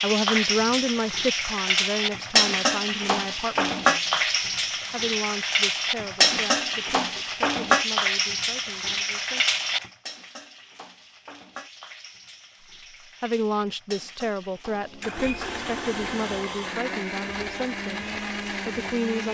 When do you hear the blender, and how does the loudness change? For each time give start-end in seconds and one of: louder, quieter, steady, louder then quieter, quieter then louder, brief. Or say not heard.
14.7-19.2 steady.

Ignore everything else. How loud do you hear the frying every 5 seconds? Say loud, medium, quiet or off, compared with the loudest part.
loud, loud, quiet, quiet.